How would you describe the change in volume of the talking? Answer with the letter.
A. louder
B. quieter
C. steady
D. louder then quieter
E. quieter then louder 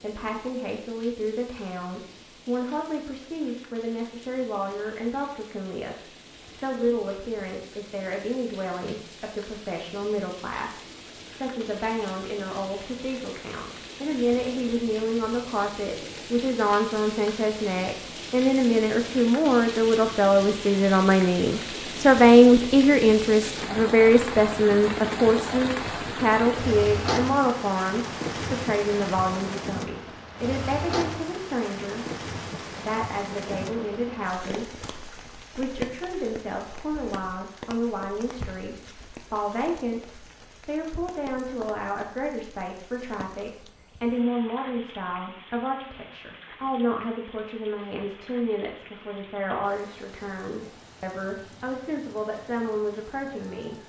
D.